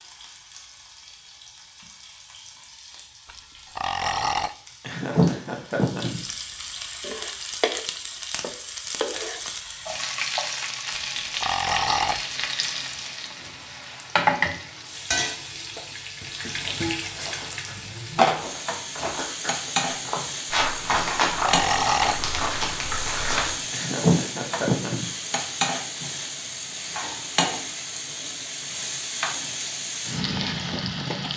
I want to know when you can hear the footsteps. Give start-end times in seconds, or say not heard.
16.6-23.6.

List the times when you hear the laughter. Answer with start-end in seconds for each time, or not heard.
4.8-6.2, 23.7-25.1.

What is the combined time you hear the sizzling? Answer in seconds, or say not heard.
31 s.